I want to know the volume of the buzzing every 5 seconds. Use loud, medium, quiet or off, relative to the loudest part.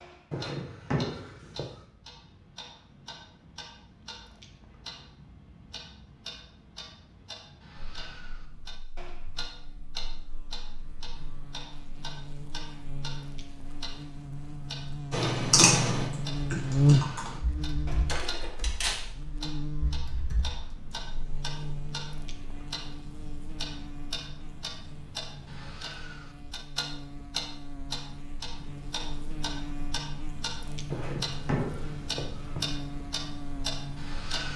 off, quiet, quiet, loud, quiet, quiet, quiet.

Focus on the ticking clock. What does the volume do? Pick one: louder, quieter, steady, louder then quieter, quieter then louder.
louder.